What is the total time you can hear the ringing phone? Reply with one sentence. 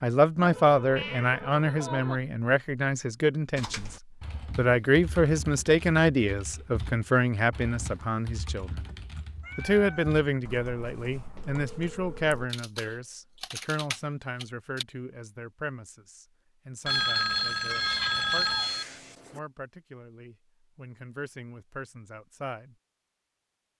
You can hear the ringing phone for 5 seconds altogether.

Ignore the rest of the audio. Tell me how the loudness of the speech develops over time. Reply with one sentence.
The loudness of the speech goes down.